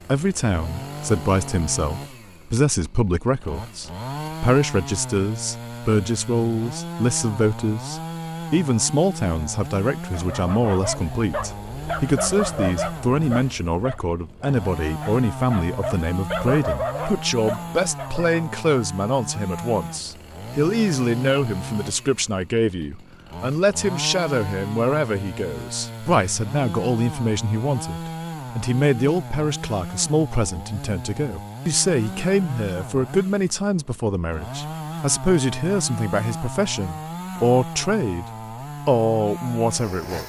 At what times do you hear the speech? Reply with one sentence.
You can hear the speech from 0.1 to 38.2 s and from 38.9 to 40.2 s.